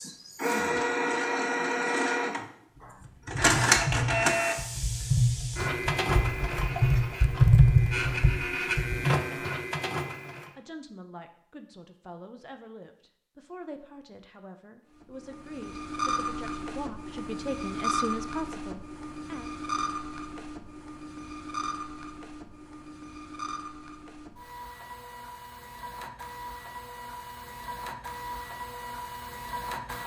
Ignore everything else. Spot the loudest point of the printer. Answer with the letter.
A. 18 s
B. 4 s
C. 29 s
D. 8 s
B.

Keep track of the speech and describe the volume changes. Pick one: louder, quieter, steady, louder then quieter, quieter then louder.
louder.